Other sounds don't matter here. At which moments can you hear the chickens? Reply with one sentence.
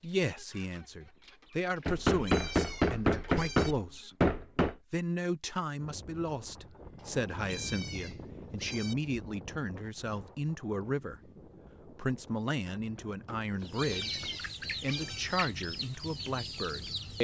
You can hear the chickens from 0.0 to 4.1 s and from 13.6 to 17.1 s.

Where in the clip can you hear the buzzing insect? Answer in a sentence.
The buzzing insect can't be heard in this clip.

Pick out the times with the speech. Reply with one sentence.
The speech can be heard from 0.0 to 4.2 s, from 4.9 to 11.2 s, from 11.8 to 14.2 s and from 14.8 to 17.1 s.